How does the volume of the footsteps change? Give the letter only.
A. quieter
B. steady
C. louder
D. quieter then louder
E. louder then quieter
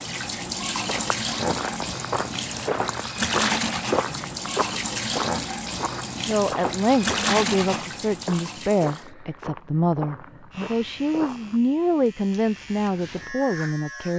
A.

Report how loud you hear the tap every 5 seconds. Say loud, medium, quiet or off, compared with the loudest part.
loud, loud, off.